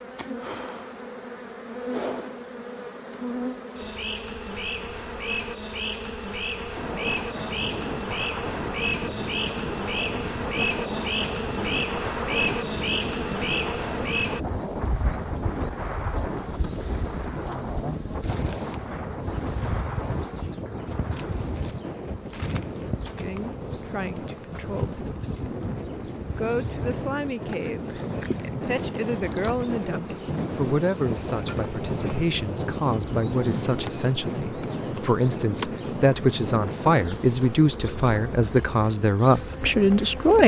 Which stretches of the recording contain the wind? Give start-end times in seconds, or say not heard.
6.8-40.4.